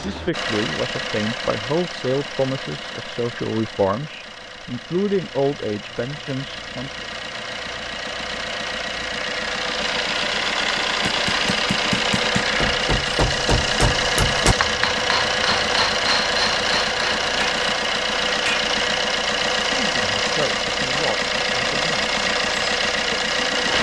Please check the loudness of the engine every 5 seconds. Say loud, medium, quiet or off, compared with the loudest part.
medium, medium, loud, loud, loud.